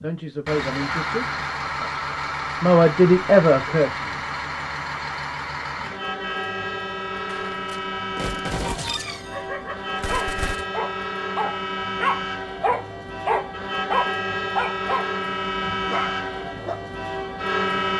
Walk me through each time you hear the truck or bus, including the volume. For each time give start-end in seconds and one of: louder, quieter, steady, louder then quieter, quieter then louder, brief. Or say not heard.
0.0-17.9 steady.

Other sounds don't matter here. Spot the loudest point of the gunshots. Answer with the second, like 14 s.
9 s.